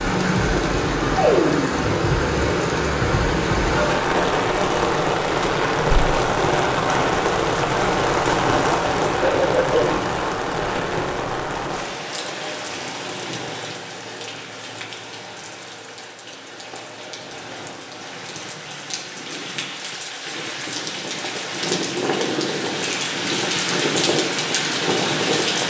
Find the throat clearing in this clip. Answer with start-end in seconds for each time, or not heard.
9.2-10.1.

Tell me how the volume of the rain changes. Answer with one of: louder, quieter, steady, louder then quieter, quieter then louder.
quieter then louder.